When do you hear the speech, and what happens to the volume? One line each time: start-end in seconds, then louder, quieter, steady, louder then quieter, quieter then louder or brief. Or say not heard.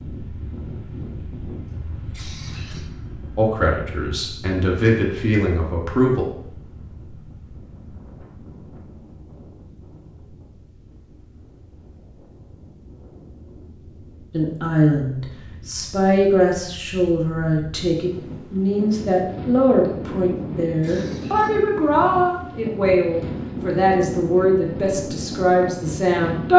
3.4-6.2 brief
14.3-26.5 steady.